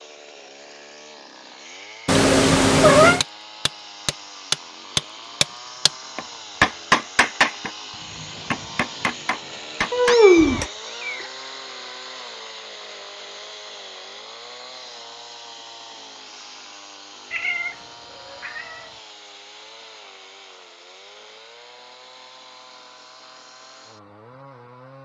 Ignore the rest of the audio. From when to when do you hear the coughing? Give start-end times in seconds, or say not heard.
not heard.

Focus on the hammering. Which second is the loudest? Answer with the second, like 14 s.
7 s.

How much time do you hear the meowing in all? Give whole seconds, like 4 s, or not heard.
4 s.